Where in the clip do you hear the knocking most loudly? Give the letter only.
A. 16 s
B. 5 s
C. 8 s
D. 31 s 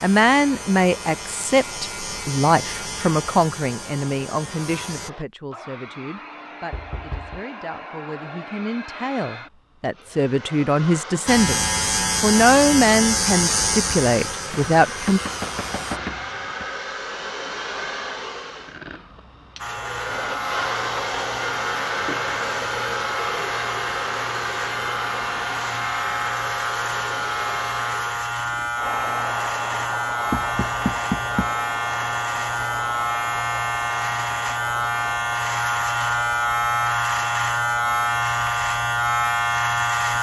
D.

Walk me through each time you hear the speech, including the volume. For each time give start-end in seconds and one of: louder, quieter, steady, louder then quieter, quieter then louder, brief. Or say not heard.
0.0-15.2 quieter then louder.